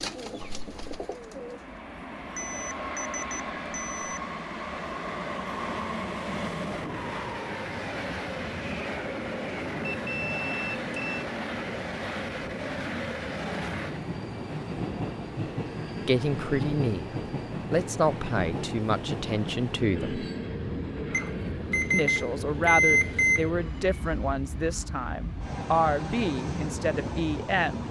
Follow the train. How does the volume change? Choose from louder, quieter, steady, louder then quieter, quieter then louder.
steady.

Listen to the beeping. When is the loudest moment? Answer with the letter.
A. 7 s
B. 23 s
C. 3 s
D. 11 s
B.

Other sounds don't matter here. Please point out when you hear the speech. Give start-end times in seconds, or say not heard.
16.0-20.2, 21.9-27.8.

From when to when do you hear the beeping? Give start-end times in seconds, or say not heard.
2.4-4.2, 9.8-11.2, 21.1-23.5.